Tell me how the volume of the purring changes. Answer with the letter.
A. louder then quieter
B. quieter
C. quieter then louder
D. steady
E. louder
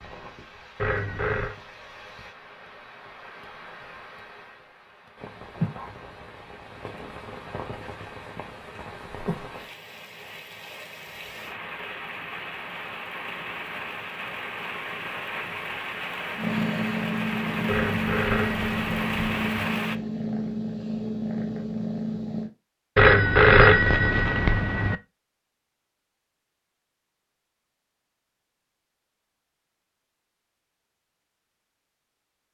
D.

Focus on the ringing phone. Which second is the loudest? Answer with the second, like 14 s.
24 s.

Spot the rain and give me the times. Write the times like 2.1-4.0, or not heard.
0.0-19.9.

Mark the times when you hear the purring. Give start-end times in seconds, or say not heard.
16.4-22.5.